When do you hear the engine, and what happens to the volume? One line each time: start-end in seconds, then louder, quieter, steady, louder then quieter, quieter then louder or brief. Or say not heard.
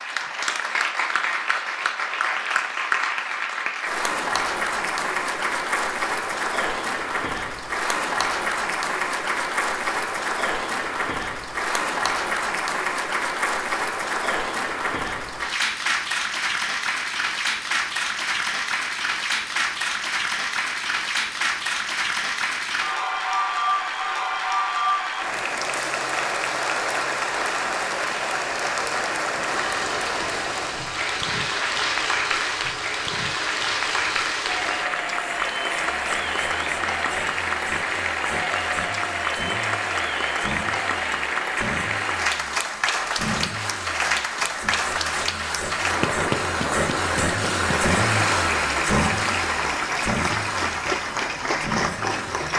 29.6-52.5 louder.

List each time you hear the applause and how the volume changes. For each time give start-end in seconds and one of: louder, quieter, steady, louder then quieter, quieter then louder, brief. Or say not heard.
0.0-52.5 steady.